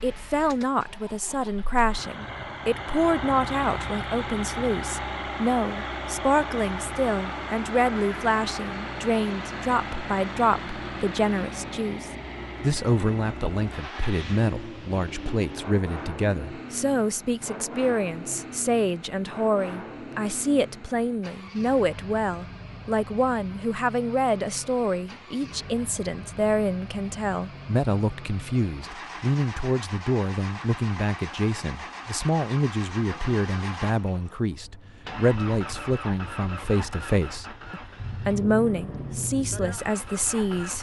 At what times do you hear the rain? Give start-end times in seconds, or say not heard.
not heard.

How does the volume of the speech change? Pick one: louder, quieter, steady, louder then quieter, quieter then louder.
steady.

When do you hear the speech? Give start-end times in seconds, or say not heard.
0.0-40.7.